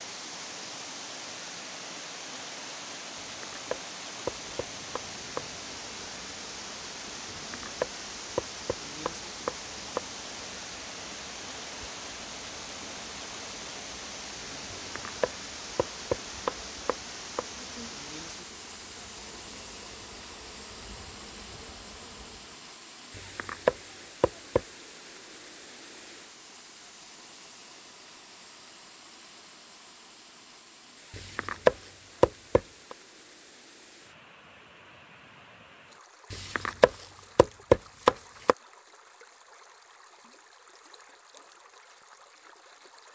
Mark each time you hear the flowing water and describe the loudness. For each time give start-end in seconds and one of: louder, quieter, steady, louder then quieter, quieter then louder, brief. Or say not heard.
0.0-43.1 quieter.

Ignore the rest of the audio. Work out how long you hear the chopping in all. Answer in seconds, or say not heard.
13 s.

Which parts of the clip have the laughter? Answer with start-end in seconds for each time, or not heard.
not heard.